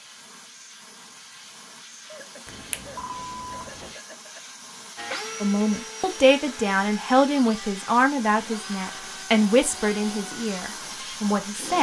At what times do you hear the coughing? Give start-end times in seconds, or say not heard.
2.0-4.4.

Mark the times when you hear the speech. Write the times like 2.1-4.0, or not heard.
5.4-11.7.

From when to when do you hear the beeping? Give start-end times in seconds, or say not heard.
2.5-4.0.